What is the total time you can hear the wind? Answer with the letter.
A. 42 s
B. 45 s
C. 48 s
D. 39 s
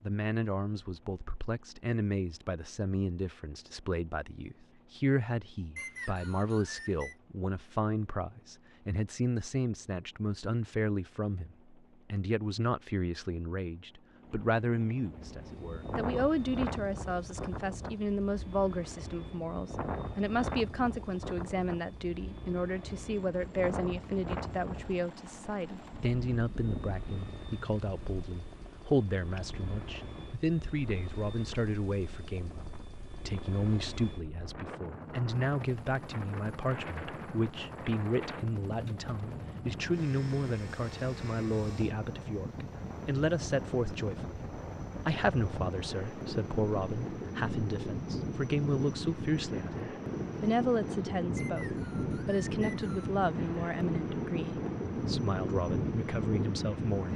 A.